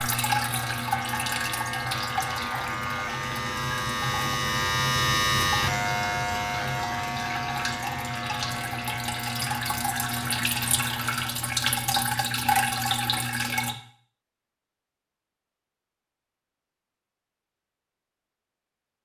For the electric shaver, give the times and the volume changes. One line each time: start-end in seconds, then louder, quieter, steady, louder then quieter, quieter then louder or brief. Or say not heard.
0.0-11.4 louder then quieter.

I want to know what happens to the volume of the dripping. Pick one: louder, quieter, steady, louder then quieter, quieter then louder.
quieter then louder.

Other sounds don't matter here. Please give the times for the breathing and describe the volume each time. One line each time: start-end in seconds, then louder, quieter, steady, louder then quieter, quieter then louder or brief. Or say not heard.
not heard.